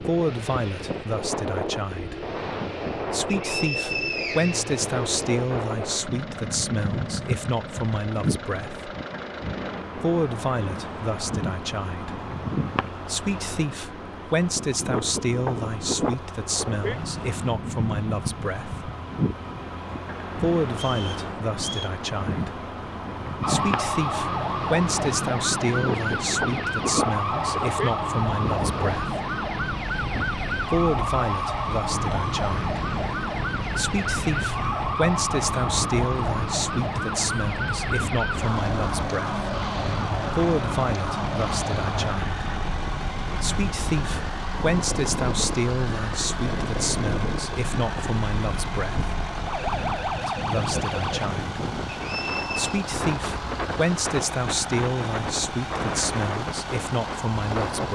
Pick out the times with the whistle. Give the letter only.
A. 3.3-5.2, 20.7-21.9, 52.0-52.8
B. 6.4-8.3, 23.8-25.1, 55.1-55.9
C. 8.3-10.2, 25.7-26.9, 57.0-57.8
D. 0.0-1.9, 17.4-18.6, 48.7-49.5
A.